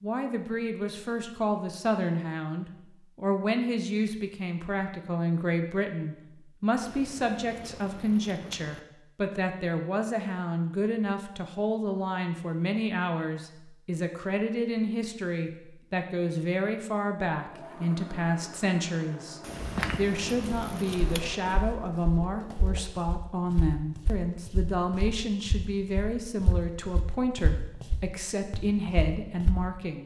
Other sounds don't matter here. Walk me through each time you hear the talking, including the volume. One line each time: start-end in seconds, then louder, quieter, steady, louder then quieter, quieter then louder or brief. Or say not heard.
0.0-30.0 steady.